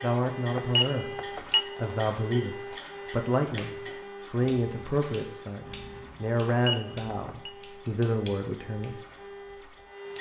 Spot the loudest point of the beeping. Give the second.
1 s.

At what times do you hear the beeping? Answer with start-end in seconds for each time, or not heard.
0.6-1.6, 6.5-7.5.